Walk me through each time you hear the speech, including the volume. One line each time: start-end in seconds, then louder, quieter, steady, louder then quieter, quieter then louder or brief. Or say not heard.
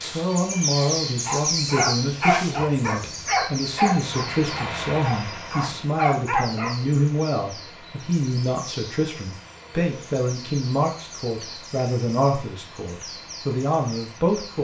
0.0-14.6 steady.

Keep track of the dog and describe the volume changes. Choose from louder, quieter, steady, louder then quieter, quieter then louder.
quieter then louder.